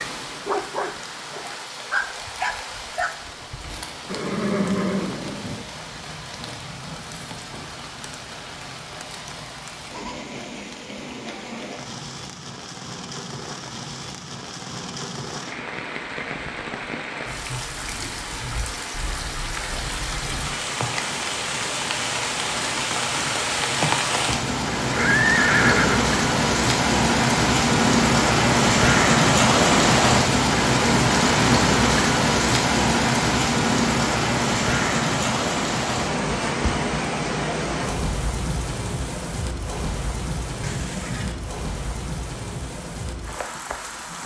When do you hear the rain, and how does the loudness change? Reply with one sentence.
The rain can be heard from 0.0 to 44.2 s, getting louder then quieter.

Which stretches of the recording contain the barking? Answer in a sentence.
The barking can be heard from 0.0 to 3.9 s.